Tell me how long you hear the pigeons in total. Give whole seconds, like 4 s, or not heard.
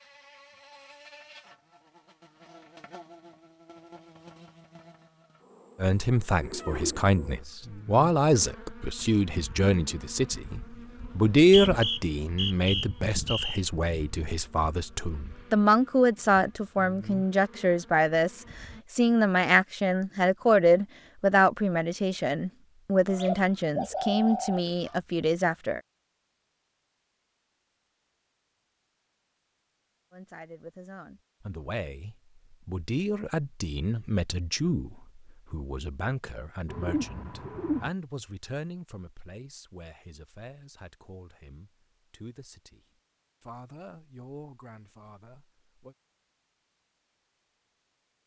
4 s.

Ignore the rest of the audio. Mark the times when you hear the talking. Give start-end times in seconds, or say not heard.
5.8-25.8, 30.1-46.0.